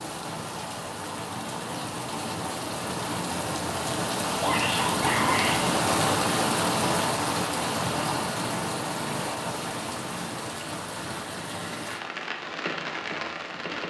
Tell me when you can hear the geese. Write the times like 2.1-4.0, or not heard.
not heard.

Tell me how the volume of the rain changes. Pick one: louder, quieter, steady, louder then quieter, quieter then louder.
louder then quieter.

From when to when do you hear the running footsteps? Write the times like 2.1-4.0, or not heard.
not heard.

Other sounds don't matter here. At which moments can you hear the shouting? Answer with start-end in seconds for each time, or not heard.
4.4-5.6.